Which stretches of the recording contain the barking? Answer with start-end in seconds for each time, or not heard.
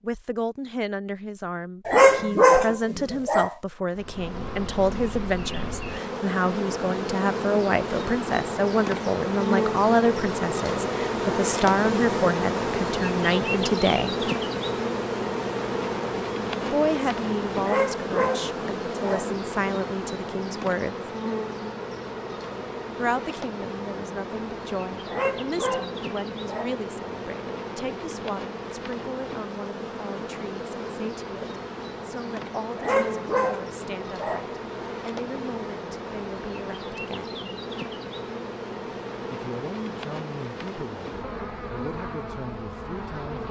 1.9-3.5, 17.6-19.4, 25.1-26.8, 32.8-34.5.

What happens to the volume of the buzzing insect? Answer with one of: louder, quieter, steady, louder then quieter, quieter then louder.
quieter.